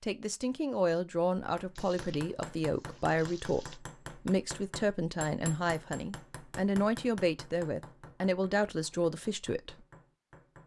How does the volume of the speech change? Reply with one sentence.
The loudness of the speech stays about the same.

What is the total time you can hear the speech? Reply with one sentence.
You can hear the speech for 10 seconds altogether.